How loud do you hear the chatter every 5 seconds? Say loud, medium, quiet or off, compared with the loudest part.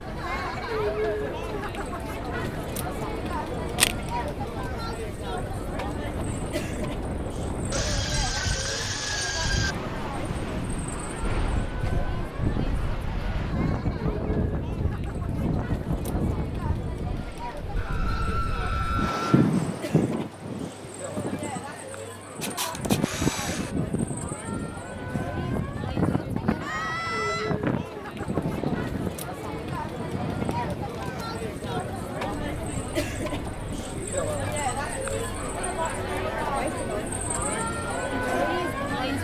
loud, medium, medium, medium, medium, medium, loud, loud.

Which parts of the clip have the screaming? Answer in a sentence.
The screaming can be heard from 7.7 to 9.8 s, from 17.8 to 19.5 s and from 26.6 to 27.6 s.